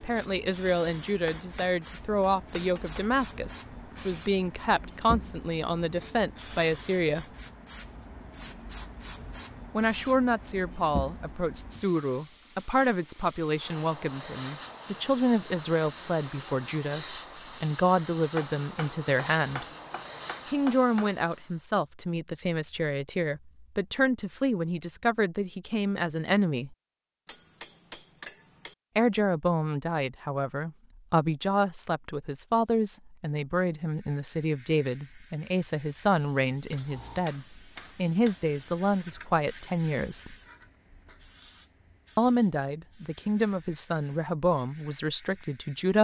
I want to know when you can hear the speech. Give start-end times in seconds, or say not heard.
0.0-7.2, 9.8-19.6, 20.5-26.8, 28.9-40.4, 42.1-45.9.